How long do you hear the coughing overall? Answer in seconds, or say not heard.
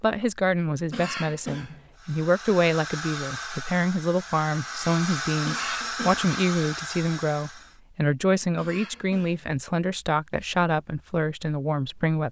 3 s.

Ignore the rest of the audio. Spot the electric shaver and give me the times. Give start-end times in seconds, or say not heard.
not heard.